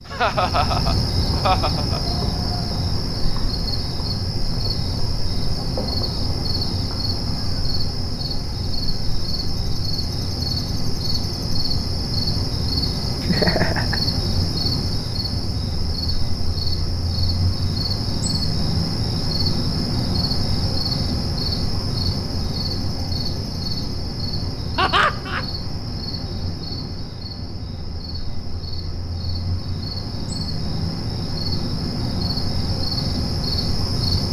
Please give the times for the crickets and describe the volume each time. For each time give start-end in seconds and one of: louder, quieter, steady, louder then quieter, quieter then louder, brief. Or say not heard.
0.0-34.2 steady.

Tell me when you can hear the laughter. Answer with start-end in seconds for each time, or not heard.
0.1-2.0, 13.2-14.0, 24.8-25.4.